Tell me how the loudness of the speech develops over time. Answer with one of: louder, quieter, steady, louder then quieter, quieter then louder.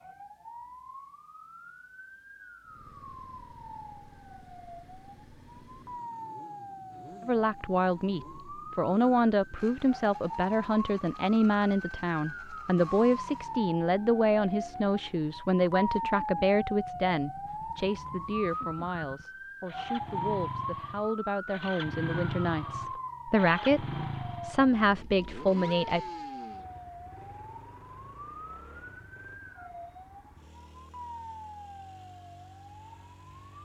quieter then louder.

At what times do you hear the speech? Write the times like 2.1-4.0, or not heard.
7.2-26.1.